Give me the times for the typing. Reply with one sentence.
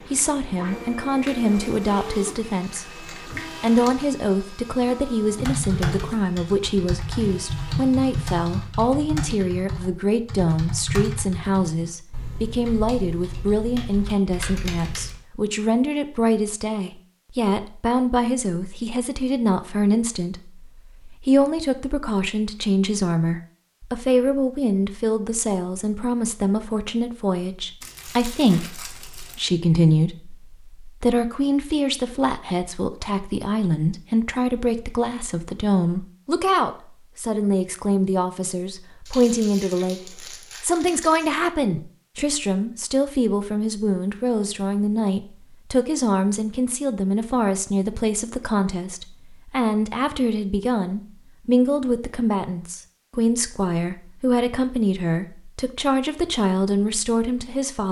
You can hear the typing from 5.2 to 15.2 s.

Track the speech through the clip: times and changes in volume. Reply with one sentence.
The speech can be heard from 0.1 to 57.8 s, at a steady volume.